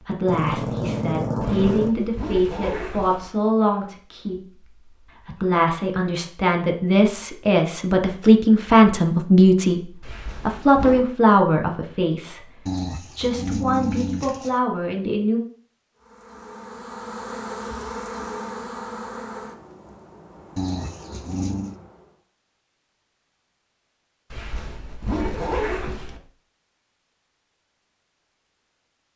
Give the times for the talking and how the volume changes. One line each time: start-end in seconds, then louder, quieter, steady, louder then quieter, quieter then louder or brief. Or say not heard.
0.0-15.4 louder then quieter.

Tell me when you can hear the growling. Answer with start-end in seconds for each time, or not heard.
0.2-1.9, 12.7-14.6, 20.6-21.8.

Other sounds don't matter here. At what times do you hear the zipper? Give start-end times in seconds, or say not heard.
1.4-3.3, 10.0-11.1, 24.3-26.2.